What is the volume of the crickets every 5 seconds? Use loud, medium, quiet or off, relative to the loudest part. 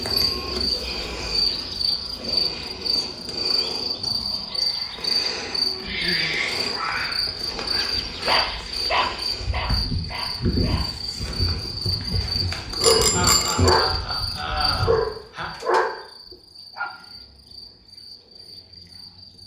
loud, loud, loud, quiet.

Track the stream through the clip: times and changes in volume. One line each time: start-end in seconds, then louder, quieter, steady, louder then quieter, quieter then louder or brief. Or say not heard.
not heard.